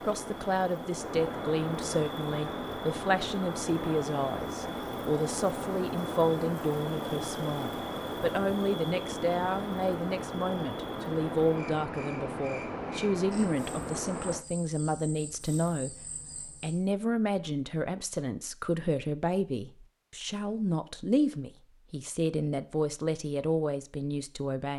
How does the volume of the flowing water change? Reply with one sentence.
The loudness of the flowing water stays about the same.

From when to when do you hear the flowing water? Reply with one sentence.
The flowing water can be heard from 0.0 to 14.4 s.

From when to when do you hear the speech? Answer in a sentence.
You can hear the speech from 0.0 to 24.7 s.